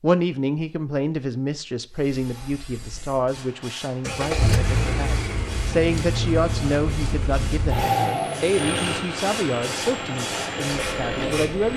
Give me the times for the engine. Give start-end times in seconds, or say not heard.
4.0-11.7.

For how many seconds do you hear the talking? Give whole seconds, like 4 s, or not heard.
12 s.